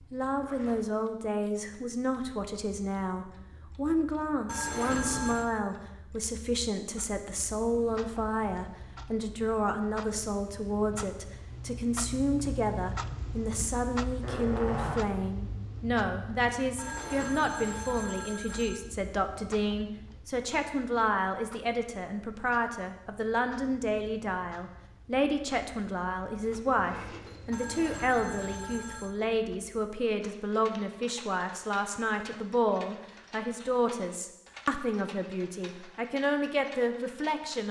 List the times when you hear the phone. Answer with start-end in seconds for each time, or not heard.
4.5-5.5, 16.8-18.8, 27.5-29.1.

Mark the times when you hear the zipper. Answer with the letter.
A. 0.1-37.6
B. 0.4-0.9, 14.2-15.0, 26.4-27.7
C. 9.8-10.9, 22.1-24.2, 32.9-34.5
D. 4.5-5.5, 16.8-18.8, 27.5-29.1
B.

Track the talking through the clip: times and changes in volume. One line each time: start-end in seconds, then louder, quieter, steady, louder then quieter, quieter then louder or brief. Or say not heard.
0.1-37.6 steady.